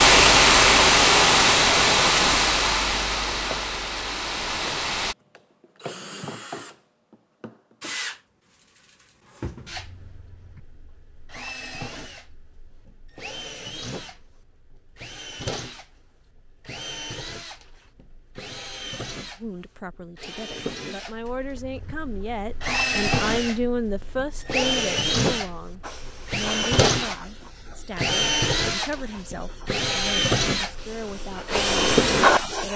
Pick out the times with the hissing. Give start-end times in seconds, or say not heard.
0.0-5.2, 25.8-32.7.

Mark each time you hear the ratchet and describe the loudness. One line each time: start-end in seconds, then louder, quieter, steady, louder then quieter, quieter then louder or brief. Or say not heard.
not heard.